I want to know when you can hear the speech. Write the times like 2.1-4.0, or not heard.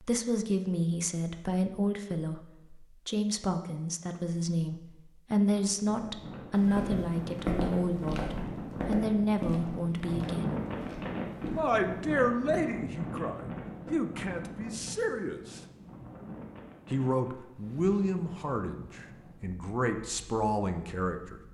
0.0-10.6, 11.5-15.6, 16.9-21.4.